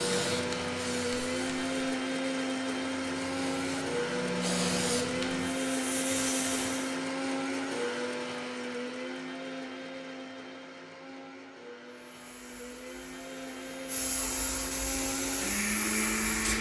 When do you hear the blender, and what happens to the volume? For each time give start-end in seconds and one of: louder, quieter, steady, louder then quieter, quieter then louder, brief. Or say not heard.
0.0-16.5 quieter then louder.